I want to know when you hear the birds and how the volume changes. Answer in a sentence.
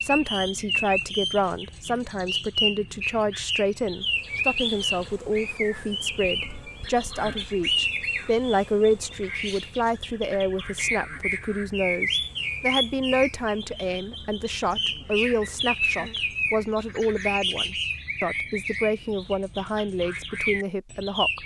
You can hear the birds from 0.0 to 21.4 s, at a steady volume.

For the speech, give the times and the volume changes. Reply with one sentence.
You can hear the speech from 0.0 to 21.4 s, at a steady volume.